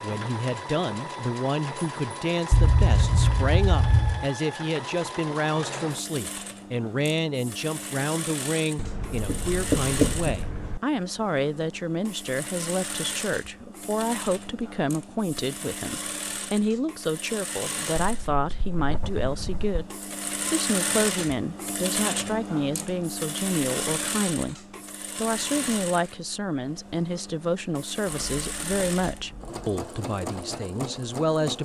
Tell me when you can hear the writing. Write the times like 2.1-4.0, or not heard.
2.5-4.2, 8.8-10.8, 18.0-19.9, 28.1-29.7.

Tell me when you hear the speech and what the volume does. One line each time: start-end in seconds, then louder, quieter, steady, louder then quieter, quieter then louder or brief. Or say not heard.
0.0-31.6 steady.